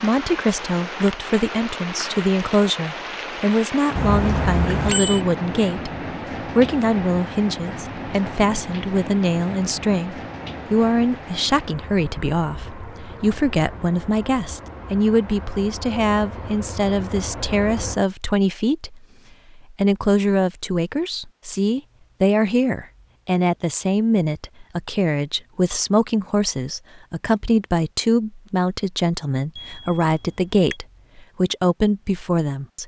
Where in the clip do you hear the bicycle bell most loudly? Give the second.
5 s.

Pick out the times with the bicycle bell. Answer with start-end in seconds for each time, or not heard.
4.0-5.2, 29.6-30.8.